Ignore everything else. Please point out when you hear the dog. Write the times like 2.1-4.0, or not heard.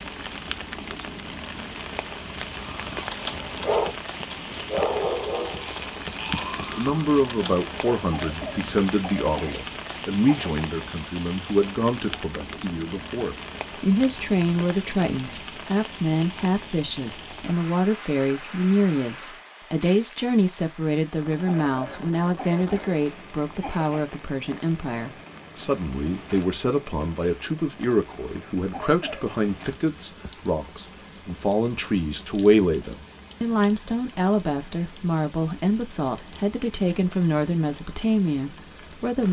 2.5-8.0.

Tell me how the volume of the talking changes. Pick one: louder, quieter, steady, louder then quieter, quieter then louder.
steady.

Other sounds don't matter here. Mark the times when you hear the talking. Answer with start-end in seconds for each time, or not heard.
6.8-39.2.